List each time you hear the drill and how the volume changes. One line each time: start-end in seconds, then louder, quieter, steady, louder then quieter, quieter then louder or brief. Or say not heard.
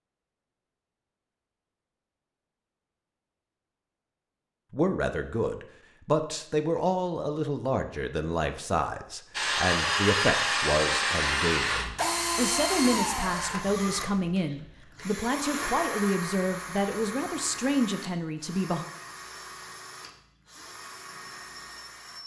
9.3-22.2 quieter.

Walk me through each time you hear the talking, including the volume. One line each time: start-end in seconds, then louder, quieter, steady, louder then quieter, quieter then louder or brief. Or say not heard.
4.7-18.9 steady.